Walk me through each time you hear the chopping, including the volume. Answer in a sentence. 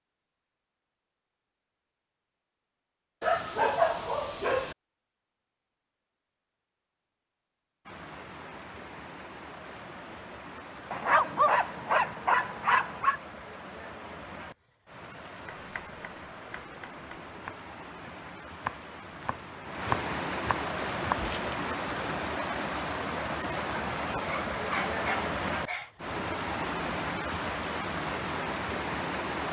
The chopping can be heard from 15.4 to 21.6 s, getting louder.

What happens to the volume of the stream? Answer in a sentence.
The volume of the stream goes up.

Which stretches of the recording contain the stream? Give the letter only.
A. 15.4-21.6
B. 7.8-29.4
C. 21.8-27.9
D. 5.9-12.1
B.